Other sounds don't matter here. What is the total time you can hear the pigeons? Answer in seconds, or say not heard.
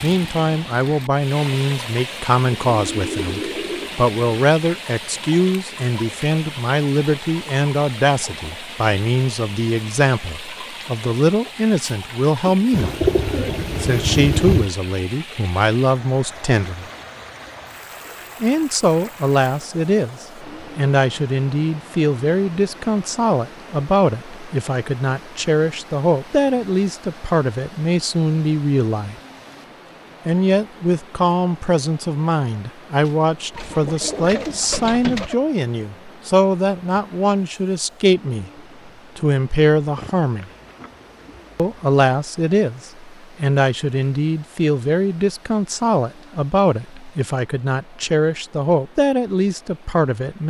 7 s.